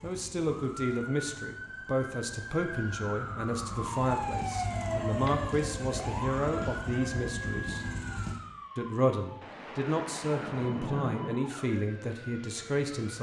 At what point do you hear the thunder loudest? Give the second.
11 s.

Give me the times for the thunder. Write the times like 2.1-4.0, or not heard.
9.4-11.4.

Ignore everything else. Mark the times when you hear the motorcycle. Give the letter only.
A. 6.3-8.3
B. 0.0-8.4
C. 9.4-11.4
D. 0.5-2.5
B.